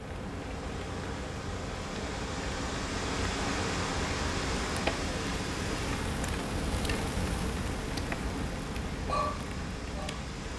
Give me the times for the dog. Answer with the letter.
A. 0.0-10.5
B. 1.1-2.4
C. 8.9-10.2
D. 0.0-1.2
C.